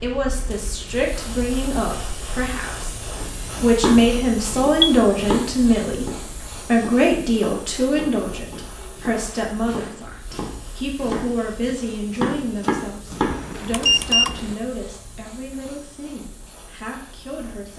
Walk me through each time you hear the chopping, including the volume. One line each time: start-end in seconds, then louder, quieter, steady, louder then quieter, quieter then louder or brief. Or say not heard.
3.1-13.4 quieter then louder.